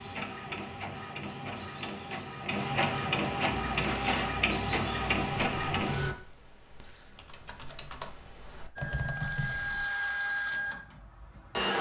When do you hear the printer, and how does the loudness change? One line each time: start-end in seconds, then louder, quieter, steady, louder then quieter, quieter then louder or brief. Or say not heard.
0.0-6.2 louder
8.8-11.7 brief.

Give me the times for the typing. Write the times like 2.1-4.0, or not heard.
3.5-9.8.